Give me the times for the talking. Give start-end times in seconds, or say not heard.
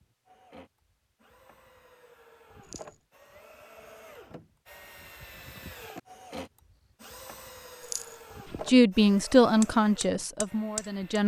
8.7-11.2.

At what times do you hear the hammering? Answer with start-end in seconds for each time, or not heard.
9.6-11.2.